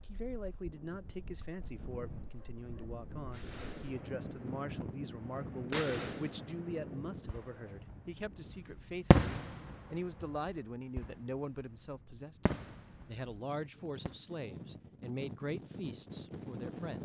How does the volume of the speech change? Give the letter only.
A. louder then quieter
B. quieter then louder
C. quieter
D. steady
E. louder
D.